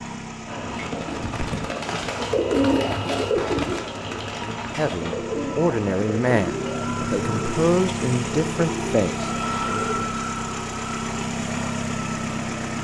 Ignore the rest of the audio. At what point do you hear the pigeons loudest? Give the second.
3 s.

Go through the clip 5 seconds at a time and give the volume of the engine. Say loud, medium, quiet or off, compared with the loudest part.
medium, loud, loud.